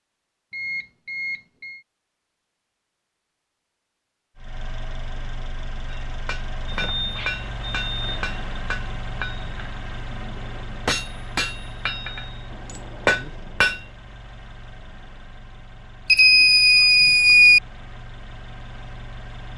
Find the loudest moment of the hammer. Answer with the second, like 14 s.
13 s.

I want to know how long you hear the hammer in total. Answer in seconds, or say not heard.
8 s.